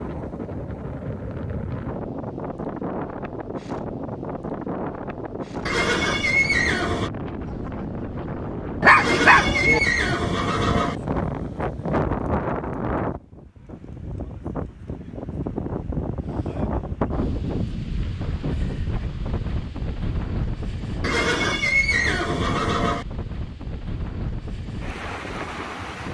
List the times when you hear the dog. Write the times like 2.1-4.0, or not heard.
8.8-9.8.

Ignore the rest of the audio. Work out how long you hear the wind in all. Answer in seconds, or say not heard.
26 s.